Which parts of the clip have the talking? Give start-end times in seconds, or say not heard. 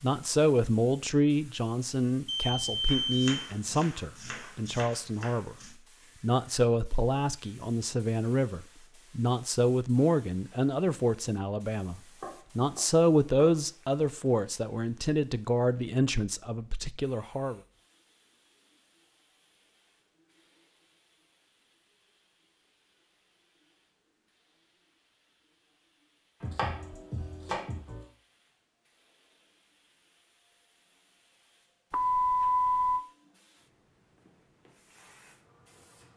0.0-17.6.